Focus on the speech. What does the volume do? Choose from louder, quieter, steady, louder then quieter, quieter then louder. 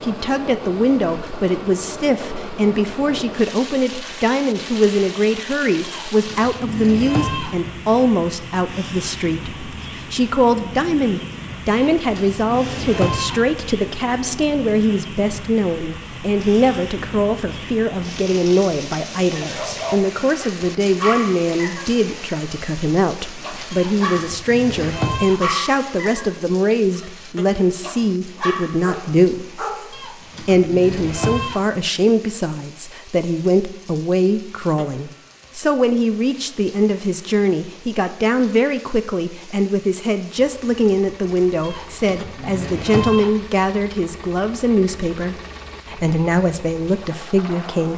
steady.